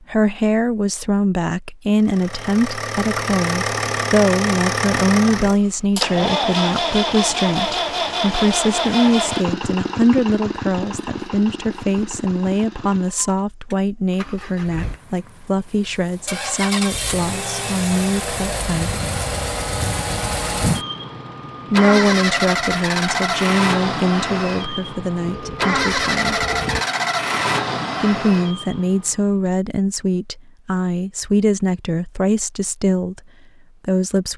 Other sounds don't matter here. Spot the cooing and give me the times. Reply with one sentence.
You can't hear the cooing here.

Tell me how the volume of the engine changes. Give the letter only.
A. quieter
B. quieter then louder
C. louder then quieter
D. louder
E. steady
B.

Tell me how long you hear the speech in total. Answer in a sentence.
The speech can be heard for 29 seconds in total.